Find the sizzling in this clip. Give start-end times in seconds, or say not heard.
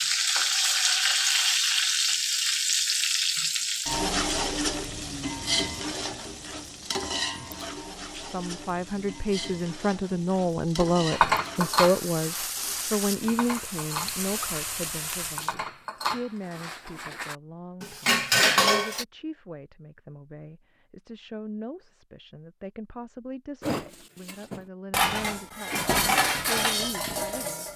0.0-15.6.